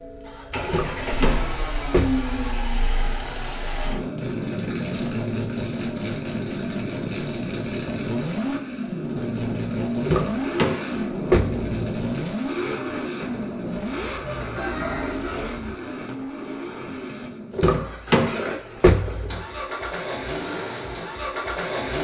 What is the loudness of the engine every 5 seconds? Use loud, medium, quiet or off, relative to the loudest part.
loud, loud, loud, medium, loud.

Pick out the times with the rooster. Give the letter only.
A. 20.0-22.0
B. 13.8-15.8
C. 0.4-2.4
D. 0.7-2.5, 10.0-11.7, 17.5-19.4
B.